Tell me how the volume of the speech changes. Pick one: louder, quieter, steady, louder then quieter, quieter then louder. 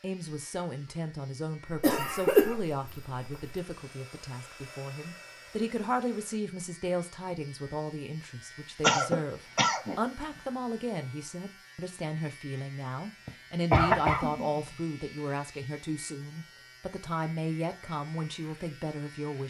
steady.